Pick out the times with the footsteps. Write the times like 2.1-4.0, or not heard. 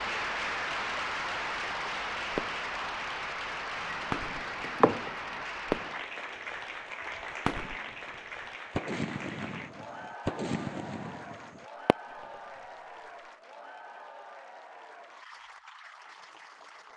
not heard.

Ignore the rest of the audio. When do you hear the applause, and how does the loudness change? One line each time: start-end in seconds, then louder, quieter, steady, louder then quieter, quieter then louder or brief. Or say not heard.
0.0-16.9 quieter.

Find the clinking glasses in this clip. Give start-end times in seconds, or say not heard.
3.9-5.5.